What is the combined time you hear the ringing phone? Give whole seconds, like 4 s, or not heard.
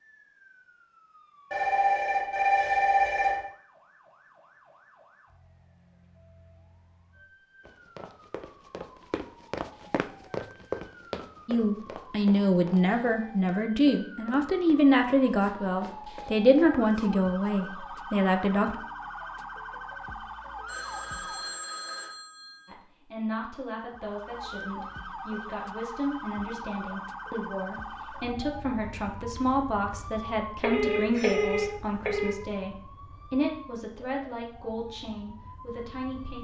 6 s.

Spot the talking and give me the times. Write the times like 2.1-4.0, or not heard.
11.4-18.8, 22.6-36.3.